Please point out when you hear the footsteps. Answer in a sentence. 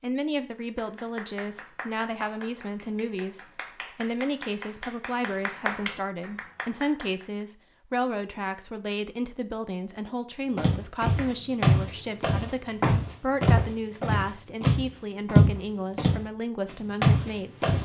You can hear the footsteps from 10.6 to 17.7 s.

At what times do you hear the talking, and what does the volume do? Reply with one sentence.
You can hear the talking from 0.0 to 17.7 s, at a steady volume.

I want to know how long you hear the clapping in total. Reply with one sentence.
You can hear the clapping for 7 seconds altogether.